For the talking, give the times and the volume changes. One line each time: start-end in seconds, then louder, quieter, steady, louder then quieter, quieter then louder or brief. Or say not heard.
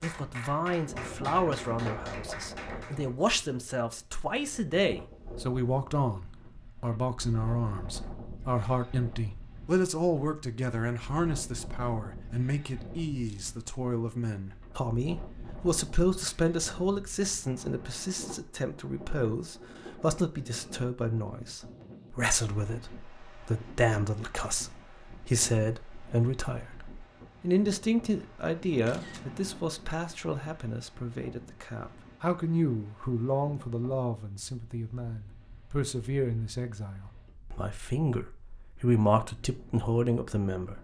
0.0-40.7 steady.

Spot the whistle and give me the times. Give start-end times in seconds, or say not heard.
not heard.